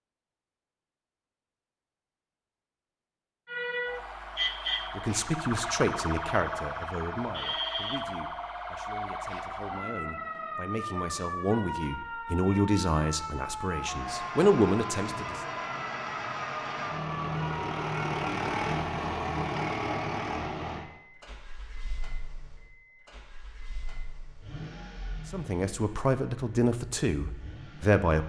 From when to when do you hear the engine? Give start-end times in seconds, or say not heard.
13.7-28.0.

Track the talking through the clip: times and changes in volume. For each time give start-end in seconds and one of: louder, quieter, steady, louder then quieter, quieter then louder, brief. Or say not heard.
5.0-15.4 quieter then louder
25.3-28.2 brief.